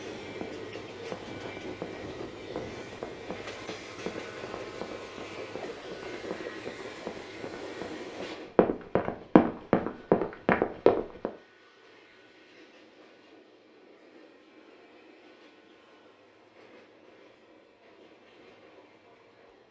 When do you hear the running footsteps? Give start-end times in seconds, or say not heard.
0.4-11.3.